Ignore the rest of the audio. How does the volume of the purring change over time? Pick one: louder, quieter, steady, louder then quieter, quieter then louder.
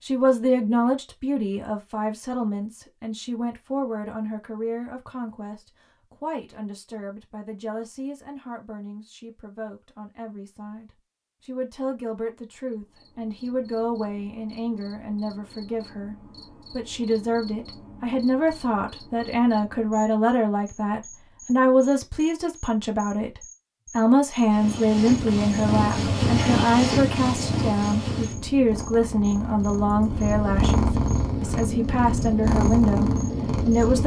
quieter then louder.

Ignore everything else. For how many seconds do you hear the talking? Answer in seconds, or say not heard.
34 s.